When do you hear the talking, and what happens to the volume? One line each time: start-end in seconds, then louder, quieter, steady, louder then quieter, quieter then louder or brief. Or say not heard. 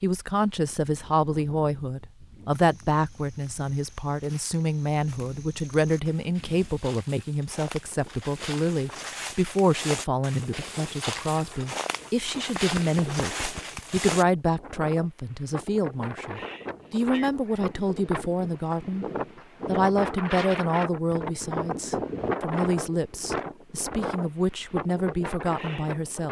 0.0-19.1 steady
19.6-26.2 quieter then louder.